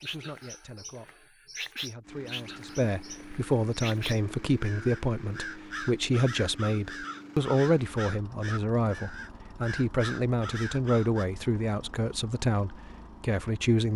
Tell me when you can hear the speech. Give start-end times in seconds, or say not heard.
0.0-13.9.